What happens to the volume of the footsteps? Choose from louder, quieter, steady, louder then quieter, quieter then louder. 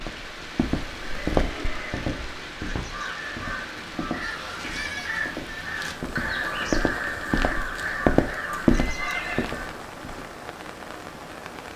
quieter then louder.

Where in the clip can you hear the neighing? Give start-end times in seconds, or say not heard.
0.9-2.5, 8.7-9.5.